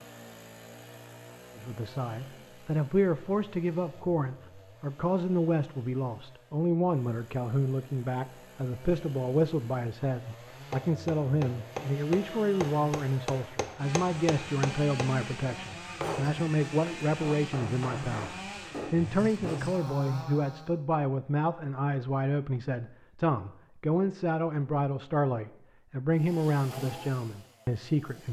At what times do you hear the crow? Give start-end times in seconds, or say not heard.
not heard.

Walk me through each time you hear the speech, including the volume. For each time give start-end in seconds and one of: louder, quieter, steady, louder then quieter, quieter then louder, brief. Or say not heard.
1.6-28.2 steady.